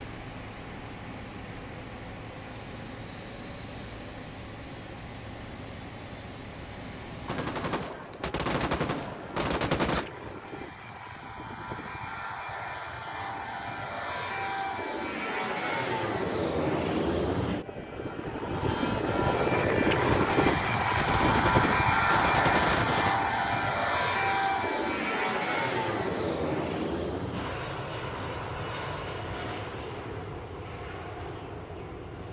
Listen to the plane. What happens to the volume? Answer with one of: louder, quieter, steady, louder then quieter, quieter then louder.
louder then quieter.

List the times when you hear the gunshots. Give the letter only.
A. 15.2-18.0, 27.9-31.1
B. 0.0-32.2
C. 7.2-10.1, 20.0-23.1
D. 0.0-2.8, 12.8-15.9
C.